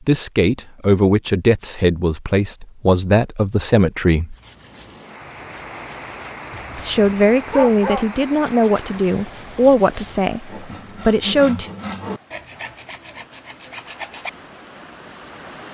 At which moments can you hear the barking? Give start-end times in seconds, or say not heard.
6.5-8.1.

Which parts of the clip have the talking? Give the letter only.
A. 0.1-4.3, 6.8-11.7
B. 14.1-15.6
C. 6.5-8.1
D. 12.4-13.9
A.